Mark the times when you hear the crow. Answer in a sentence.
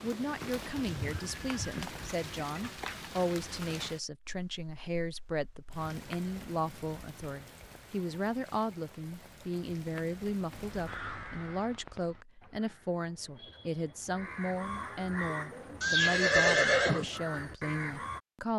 You can hear the crow from 10.5 to 18.2 s.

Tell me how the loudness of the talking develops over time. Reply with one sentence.
The volume of the talking stays about the same.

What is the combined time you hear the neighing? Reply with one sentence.
The neighing can be heard for 2 seconds in total.